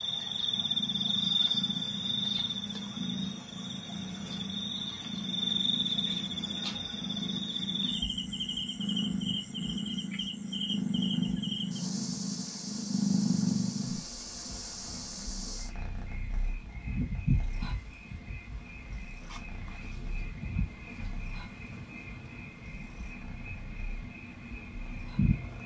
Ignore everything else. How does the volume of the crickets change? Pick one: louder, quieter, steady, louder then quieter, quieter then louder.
quieter.